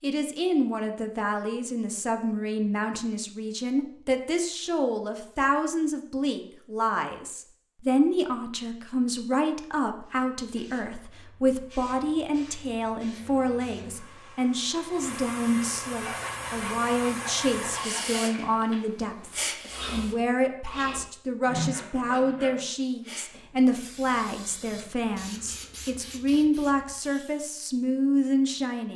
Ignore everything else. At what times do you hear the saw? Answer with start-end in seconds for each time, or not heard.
15.9-22.6.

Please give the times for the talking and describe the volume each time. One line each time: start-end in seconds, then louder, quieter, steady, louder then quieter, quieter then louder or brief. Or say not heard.
0.0-28.9 steady.